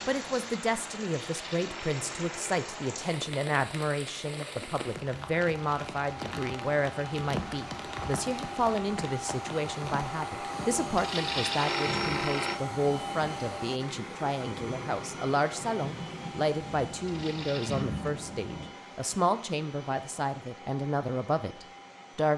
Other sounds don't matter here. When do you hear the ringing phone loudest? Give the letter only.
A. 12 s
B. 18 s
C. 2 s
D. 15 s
A.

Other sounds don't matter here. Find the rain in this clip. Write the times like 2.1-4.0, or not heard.
0.0-18.8.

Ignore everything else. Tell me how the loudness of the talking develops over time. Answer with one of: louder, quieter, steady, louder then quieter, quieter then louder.
steady.